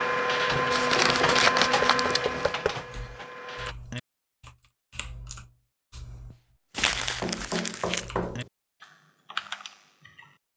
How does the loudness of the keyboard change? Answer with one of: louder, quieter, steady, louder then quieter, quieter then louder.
quieter then louder.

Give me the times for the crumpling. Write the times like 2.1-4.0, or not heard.
0.7-2.5, 6.3-8.1.